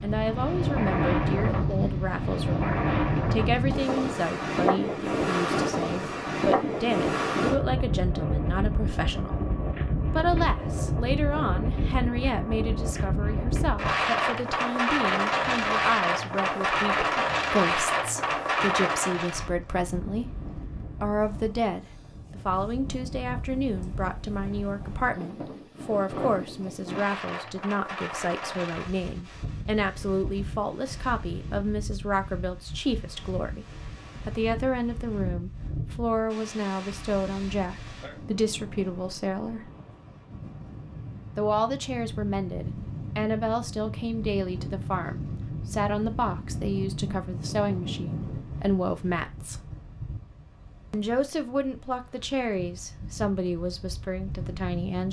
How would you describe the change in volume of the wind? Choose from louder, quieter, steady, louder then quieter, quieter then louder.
quieter.